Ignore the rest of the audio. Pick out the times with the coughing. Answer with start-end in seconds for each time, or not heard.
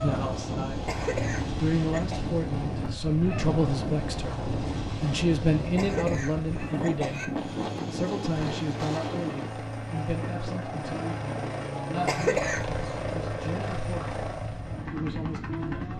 0.8-2.2, 5.8-7.2, 12.1-12.9.